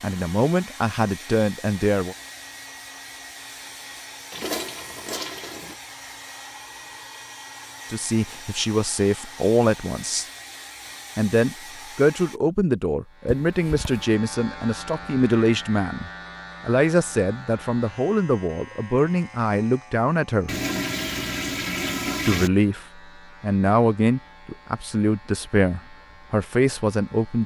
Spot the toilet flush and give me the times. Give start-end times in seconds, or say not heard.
4.3-5.8, 13.4-14.1, 20.4-22.5.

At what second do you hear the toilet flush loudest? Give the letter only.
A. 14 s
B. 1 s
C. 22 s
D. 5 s
C.